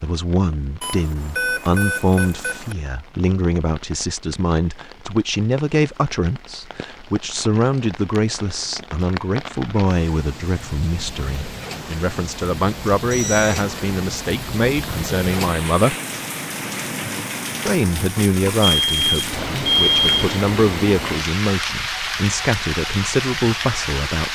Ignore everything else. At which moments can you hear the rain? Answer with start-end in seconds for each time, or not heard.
0.0-24.3.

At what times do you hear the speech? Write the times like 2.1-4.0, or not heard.
0.0-15.9, 17.6-24.3.